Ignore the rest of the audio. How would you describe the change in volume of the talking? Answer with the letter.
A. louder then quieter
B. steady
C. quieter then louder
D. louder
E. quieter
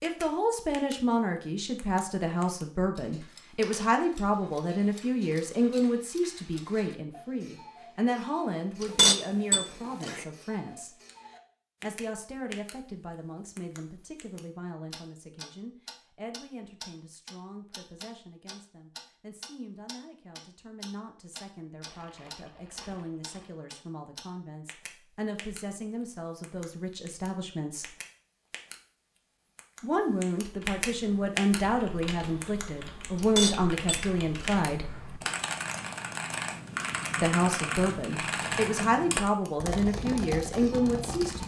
C.